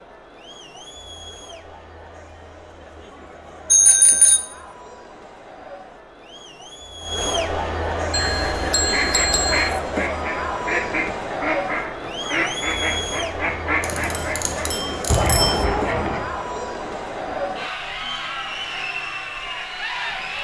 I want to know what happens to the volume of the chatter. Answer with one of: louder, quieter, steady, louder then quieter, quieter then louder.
louder.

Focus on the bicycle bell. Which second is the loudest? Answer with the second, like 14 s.
4 s.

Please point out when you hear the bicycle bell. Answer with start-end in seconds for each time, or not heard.
3.7-4.4, 8.1-9.7, 13.8-15.7.